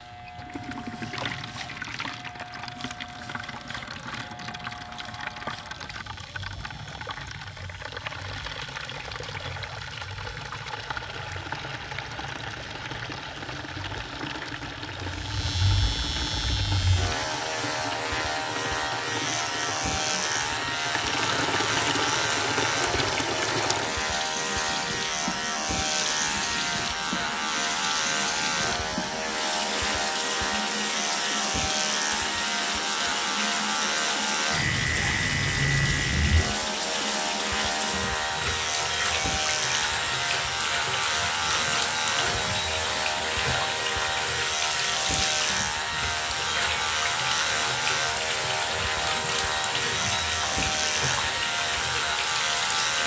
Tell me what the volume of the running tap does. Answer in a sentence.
The volume of the running tap goes up.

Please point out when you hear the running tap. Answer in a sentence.
You can hear the running tap from 0.0 to 53.0 s.